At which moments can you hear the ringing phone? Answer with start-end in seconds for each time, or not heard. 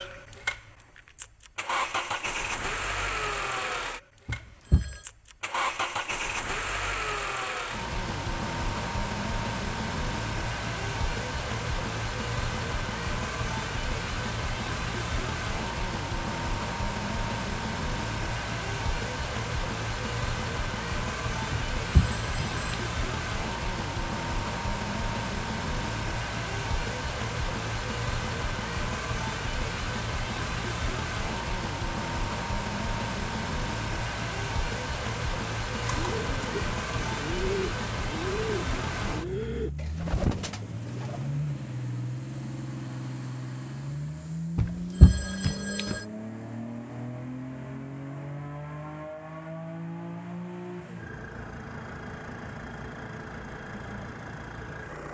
4.2-5.0, 21.5-22.8, 44.5-46.0.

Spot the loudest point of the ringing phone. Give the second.
45 s.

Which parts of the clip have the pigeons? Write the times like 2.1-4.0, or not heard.
35.8-41.2.